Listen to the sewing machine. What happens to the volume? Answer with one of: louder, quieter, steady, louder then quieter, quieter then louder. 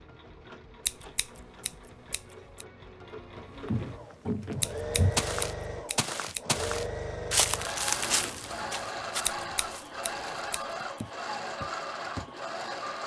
louder.